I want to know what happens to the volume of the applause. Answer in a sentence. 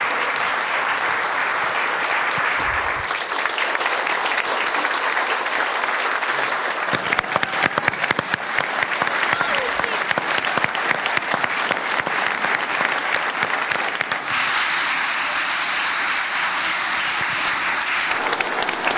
The loudness of the applause stays about the same.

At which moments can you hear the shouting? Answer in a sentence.
The shouting can be heard from 9.2 to 10.0 s.